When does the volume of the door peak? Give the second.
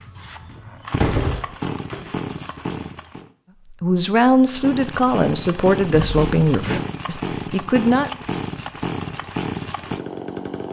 1 s.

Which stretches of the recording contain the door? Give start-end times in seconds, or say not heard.
0.2-2.1, 5.9-6.8.